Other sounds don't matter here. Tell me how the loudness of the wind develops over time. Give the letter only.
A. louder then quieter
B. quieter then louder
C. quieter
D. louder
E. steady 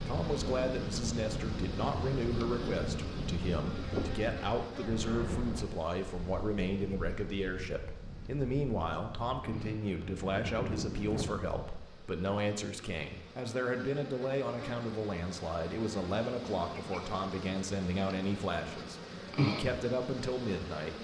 B.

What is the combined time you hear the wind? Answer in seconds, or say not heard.
12 s.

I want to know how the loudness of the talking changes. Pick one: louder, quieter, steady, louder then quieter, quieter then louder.
steady.